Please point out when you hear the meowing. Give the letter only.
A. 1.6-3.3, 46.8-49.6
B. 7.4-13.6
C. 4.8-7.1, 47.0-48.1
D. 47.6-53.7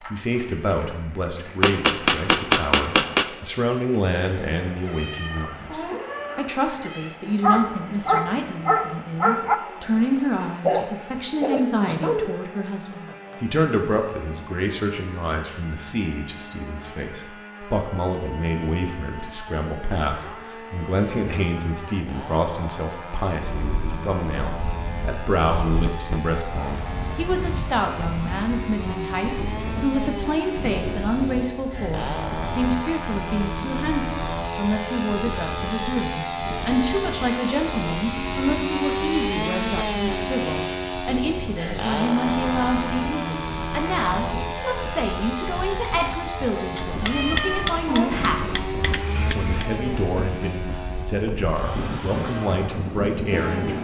C.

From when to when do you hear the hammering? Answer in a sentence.
You can hear the hammering from 1.6 to 3.3 s and from 46.8 to 49.6 s.